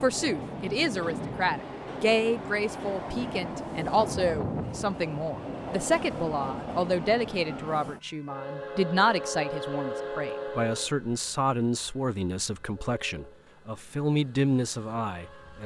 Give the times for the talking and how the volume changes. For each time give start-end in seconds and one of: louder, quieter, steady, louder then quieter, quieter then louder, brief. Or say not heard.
0.0-15.6 steady.